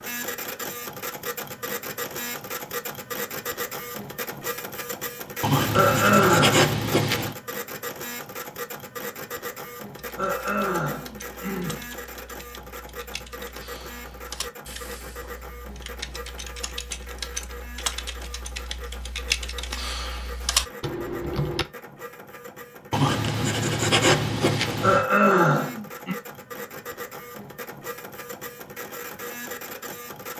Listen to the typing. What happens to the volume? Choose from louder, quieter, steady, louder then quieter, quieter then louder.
louder.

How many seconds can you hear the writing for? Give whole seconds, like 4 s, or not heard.
4 s.